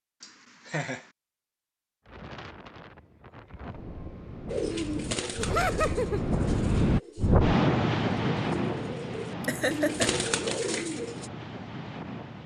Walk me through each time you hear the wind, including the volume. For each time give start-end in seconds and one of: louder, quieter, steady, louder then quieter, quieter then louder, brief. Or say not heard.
2.0-12.4 louder then quieter.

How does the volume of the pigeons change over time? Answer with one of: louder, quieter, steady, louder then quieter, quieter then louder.
quieter then louder.